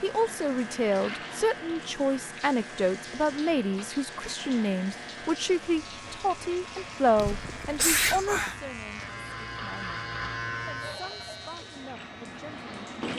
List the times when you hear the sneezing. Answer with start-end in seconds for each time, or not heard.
7.2-8.6.